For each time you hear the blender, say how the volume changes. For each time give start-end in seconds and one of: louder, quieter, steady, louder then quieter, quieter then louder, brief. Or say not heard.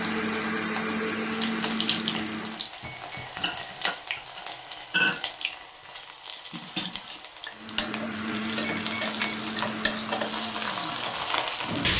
0.0-2.6 brief
7.5-11.9 quieter.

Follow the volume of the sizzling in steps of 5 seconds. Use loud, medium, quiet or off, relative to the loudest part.
medium, loud, loud.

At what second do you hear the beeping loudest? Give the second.
9 s.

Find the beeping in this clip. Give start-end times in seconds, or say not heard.
2.8-3.3, 8.6-9.4.